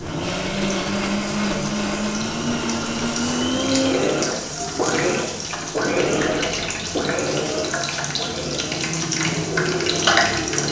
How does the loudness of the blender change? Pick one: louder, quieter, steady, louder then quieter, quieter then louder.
quieter.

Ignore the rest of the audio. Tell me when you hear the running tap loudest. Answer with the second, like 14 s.
10 s.